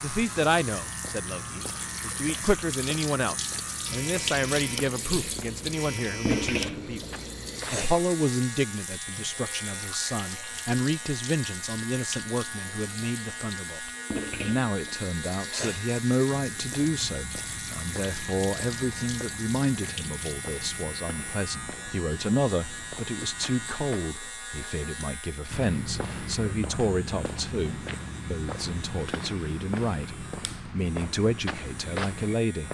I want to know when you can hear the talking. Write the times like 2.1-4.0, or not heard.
0.0-7.0, 7.7-32.6.